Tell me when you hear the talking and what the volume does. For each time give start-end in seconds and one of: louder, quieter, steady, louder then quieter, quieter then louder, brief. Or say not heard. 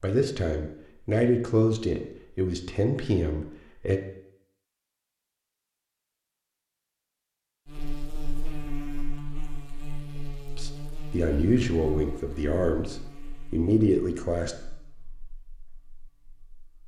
0.0-4.0 louder then quieter
10.6-14.6 quieter then louder.